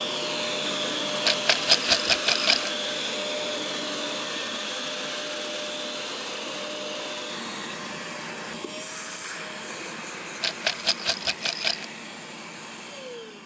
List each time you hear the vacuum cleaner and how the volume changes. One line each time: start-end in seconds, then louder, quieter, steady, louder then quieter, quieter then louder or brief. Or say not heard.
0.0-13.4 quieter.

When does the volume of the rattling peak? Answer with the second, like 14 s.
2 s.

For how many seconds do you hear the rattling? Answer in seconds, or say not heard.
3 s.